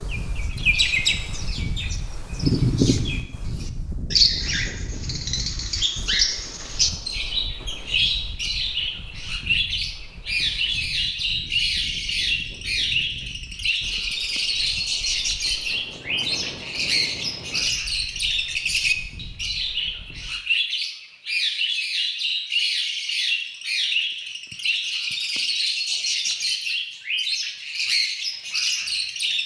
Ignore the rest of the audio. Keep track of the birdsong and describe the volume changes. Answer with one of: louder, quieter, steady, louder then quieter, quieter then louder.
steady.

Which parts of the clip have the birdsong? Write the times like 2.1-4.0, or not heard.
0.0-29.4.